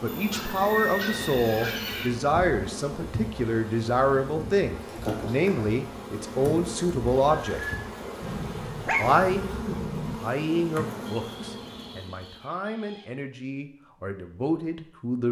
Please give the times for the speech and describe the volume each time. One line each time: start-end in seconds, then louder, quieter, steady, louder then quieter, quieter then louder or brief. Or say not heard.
0.0-7.6 steady
8.9-15.2 quieter then louder.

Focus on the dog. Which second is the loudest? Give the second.
9 s.